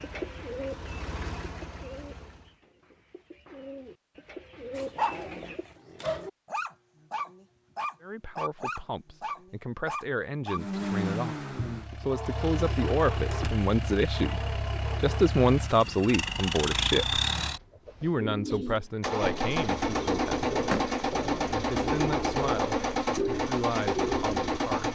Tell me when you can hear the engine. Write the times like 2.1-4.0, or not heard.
0.0-2.5, 10.5-24.9.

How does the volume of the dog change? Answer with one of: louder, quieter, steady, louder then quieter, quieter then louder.
quieter.